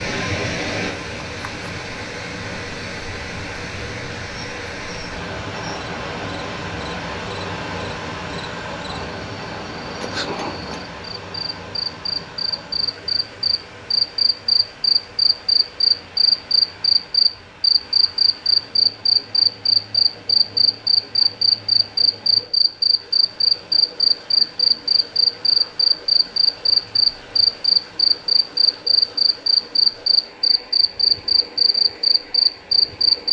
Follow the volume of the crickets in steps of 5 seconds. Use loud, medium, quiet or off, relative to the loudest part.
quiet, quiet, medium, loud, loud, loud, loud.